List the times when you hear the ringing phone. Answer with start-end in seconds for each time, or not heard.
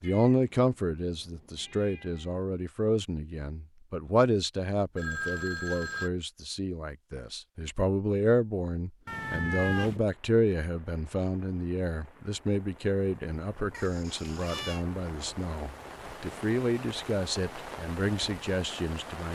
5.0-6.1.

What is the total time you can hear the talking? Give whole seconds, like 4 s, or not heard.
19 s.